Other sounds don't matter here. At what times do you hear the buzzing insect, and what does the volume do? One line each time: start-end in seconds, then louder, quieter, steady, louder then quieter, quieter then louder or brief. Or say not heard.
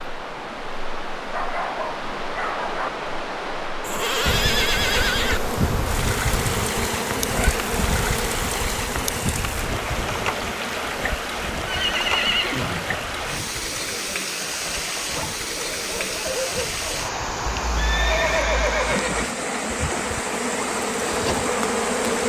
4.2-22.2 quieter then louder.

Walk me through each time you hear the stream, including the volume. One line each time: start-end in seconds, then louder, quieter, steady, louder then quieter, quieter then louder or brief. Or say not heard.
0.0-22.2 steady.